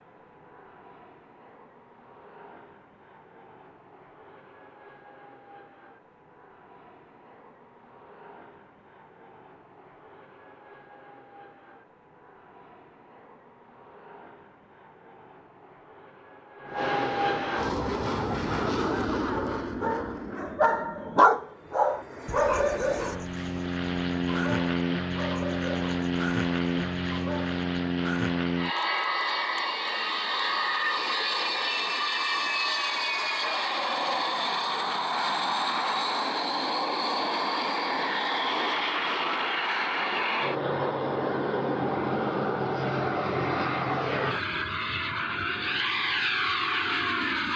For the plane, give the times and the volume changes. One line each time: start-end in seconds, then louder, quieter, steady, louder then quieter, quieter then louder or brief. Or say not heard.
0.0-47.5 louder.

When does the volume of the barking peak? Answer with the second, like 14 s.
21 s.